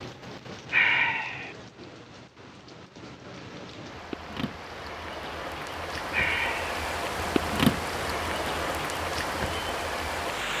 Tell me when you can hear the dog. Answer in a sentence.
You can't hear the dog here.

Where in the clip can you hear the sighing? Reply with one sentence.
The sighing can be heard from 0.7 to 1.6 s and from 6.1 to 6.8 s.